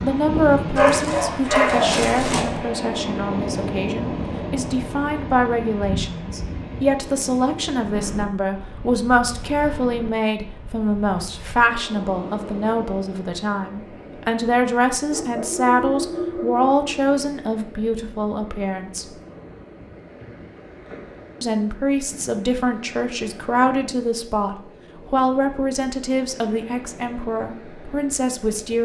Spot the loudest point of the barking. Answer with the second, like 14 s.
2 s.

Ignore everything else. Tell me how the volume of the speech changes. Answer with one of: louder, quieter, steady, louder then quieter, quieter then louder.
steady.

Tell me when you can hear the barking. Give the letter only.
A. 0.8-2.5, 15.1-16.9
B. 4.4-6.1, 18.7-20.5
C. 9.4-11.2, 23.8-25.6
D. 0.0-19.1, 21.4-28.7
A.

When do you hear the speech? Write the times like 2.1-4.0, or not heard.
0.0-19.1, 21.4-28.7.